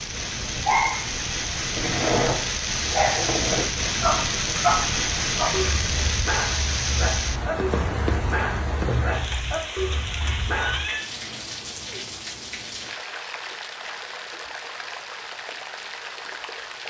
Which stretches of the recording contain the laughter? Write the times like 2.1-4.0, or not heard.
not heard.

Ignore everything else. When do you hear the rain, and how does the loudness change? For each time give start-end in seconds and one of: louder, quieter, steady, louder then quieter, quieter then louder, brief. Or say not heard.
0.0-16.8 quieter.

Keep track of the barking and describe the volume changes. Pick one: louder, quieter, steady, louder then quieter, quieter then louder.
quieter.